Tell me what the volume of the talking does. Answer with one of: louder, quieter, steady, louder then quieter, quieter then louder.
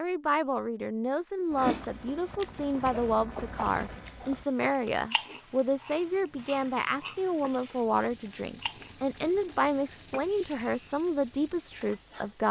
steady.